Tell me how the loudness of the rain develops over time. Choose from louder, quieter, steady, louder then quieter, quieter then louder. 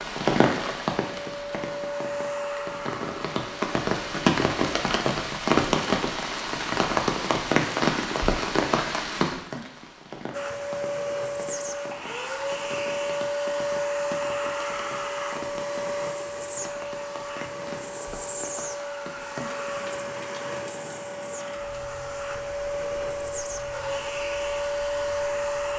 quieter.